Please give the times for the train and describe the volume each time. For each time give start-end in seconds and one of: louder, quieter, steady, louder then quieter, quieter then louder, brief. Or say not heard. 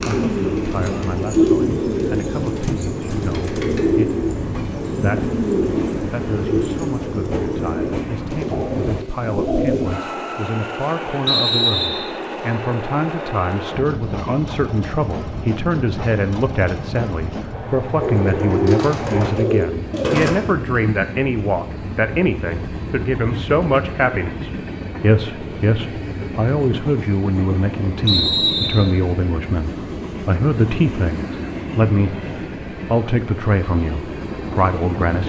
0.0-35.2 steady.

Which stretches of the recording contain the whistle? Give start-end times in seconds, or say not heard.
11.2-12.1, 28.1-28.9.